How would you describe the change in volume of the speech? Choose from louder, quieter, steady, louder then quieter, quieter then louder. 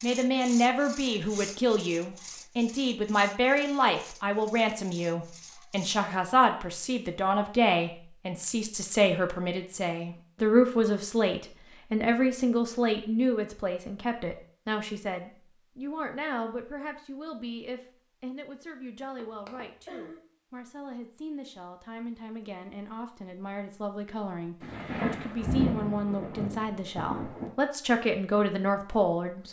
quieter then louder.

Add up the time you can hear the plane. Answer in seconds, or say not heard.
not heard.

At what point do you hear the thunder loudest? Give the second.
26 s.